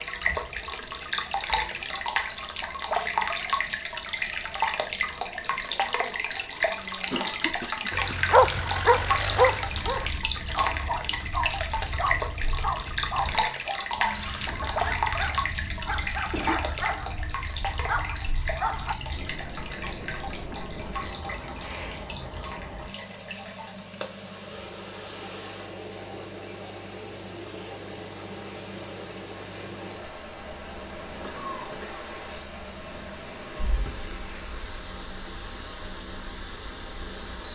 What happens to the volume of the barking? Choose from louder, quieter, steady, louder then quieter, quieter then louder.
quieter.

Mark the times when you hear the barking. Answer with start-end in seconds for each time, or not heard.
7.9-18.9.